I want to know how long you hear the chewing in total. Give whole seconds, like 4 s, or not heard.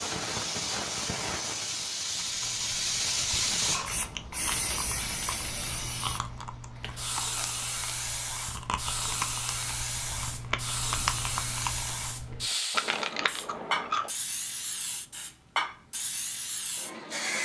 12 s.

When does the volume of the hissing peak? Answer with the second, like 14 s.
3 s.